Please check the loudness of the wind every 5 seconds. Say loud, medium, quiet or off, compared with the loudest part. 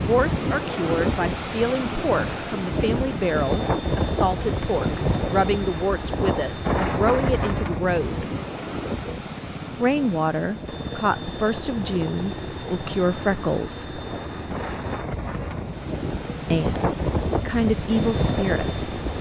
loud, loud, medium, loud.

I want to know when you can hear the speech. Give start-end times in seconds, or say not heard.
0.0-8.3, 9.8-14.0, 16.5-19.1.